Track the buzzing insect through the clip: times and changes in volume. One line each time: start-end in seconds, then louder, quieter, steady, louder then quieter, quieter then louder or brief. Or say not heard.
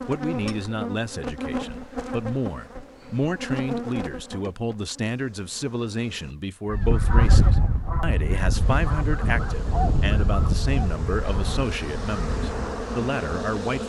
0.0-6.3 quieter
8.6-13.8 louder.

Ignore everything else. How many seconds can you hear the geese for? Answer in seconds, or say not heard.
6 s.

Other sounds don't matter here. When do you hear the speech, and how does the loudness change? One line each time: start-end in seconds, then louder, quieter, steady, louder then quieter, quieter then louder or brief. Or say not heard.
0.1-13.8 steady.